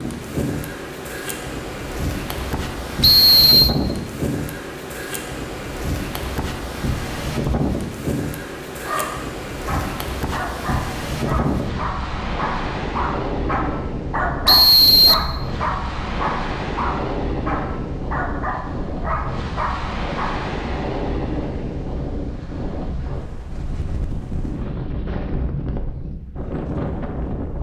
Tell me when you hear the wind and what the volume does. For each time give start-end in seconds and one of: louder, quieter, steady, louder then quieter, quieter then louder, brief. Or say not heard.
0.0-27.5 steady.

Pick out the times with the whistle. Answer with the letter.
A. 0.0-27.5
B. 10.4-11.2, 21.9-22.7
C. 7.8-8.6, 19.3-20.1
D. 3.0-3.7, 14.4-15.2
D.